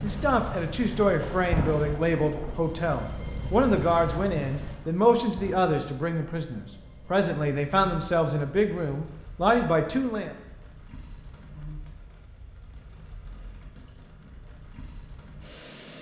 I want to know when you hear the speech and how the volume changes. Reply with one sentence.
The speech can be heard from 0.0 to 10.3 s, at a steady volume.